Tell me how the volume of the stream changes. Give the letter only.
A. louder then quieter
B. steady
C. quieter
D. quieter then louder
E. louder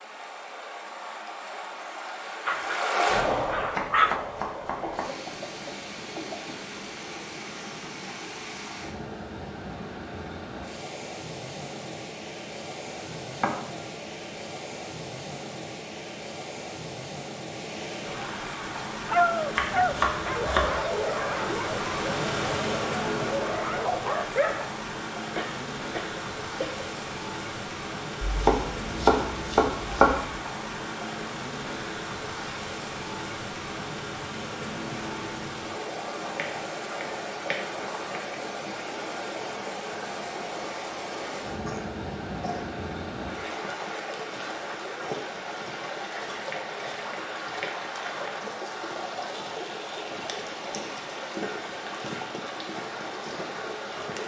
B.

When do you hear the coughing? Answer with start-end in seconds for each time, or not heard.
4.8-6.6, 25.4-26.9, 41.6-42.7.